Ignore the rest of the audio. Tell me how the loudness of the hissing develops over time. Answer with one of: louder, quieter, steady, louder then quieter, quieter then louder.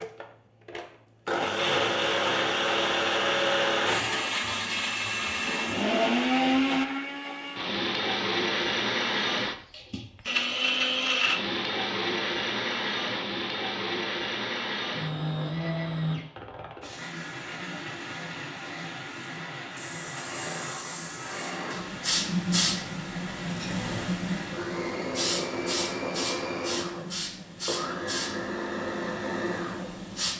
louder then quieter.